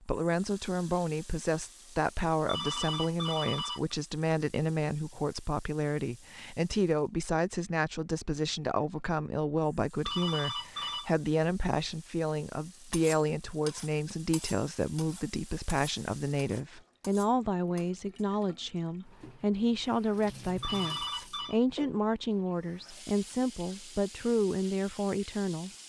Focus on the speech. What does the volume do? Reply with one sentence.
The loudness of the speech stays about the same.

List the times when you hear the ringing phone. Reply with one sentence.
You can hear the ringing phone from 2.5 to 4.0 s, from 10.1 to 11.1 s and from 20.6 to 21.6 s.